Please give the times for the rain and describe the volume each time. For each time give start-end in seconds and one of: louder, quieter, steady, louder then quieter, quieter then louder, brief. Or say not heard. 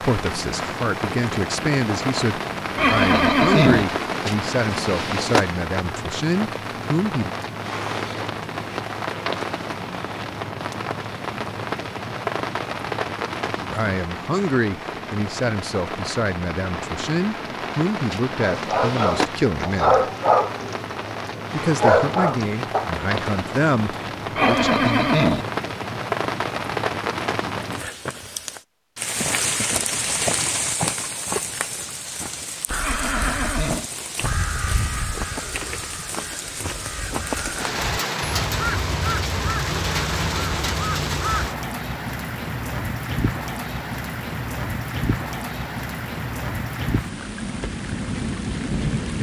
0.0-49.1 steady.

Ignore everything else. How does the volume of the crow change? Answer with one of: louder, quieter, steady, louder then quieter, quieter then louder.
quieter then louder.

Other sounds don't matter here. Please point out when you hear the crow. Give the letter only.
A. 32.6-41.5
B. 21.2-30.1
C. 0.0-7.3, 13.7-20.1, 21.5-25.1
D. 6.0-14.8
A.